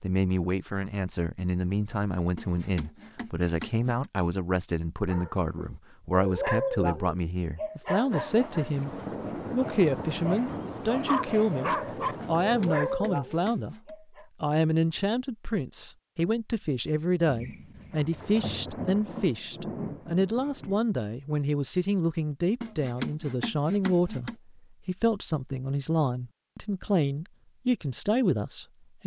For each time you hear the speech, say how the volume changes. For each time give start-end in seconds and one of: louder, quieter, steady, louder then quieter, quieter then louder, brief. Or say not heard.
0.0-29.0 steady.